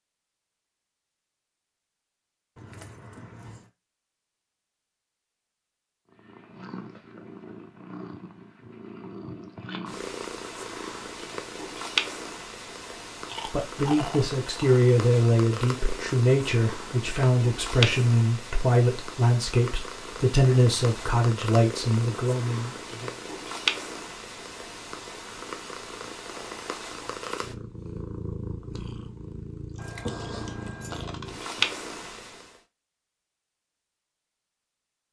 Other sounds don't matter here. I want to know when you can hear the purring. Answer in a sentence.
The purring can be heard from 6.1 to 32.6 s.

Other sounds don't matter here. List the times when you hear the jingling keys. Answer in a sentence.
The jingling keys can be heard from 2.5 to 3.7 s and from 29.8 to 31.1 s.